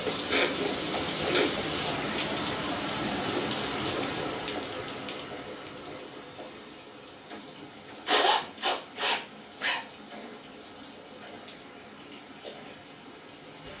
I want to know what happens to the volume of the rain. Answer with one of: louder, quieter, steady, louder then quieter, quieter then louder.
quieter.